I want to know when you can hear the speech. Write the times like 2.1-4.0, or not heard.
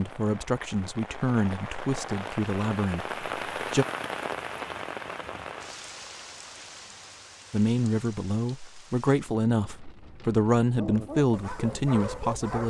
0.0-3.9, 7.5-12.6.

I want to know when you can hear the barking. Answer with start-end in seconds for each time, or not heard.
10.8-12.6.